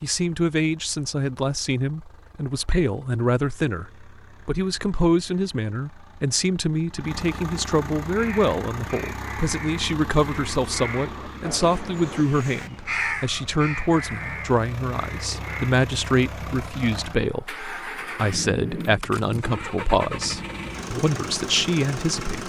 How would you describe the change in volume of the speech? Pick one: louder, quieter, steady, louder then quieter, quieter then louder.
steady.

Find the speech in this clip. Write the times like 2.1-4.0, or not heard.
0.0-22.4.